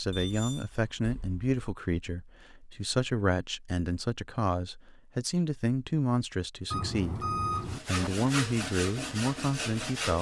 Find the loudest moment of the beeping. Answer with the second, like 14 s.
7 s.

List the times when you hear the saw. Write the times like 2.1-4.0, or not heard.
7.5-10.1.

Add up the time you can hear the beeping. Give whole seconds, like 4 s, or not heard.
3 s.